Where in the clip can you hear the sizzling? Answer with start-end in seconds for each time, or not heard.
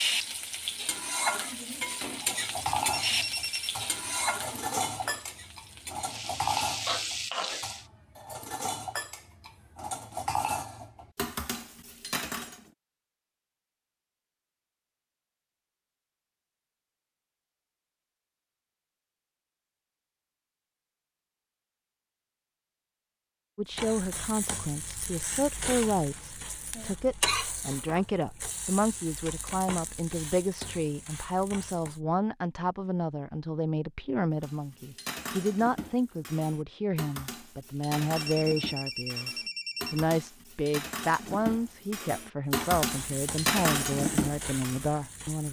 0.0-7.8, 23.7-32.0, 42.5-45.4.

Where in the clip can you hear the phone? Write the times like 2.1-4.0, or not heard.
2.9-3.7, 38.1-40.0.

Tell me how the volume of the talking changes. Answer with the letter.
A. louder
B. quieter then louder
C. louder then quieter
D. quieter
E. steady
E.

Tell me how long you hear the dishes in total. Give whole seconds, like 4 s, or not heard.
21 s.